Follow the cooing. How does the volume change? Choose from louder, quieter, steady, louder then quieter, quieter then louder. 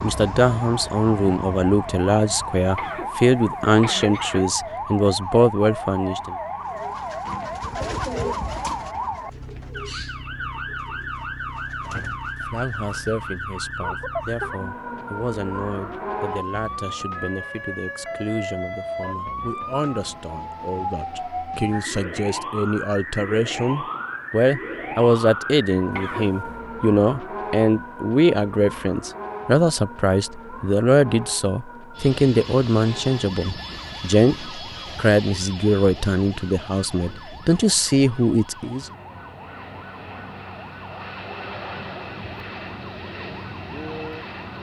quieter.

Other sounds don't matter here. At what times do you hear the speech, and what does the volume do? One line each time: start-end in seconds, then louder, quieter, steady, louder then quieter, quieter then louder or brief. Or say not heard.
0.0-6.3 steady
11.8-38.9 louder.